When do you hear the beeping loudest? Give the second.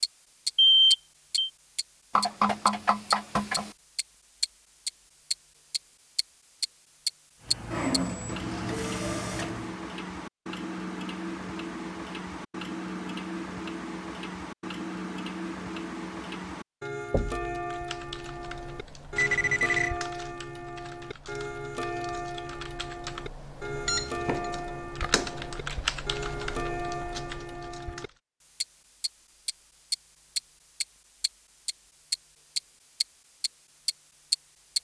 1 s.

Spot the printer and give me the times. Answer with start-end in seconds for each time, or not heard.
7.4-9.8.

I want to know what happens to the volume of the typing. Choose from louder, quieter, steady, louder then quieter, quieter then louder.
louder.